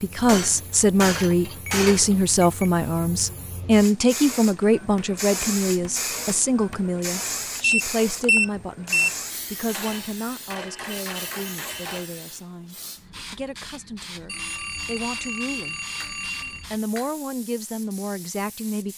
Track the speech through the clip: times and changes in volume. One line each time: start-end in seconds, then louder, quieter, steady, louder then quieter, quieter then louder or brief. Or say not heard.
0.0-15.8 quieter
16.7-18.9 brief.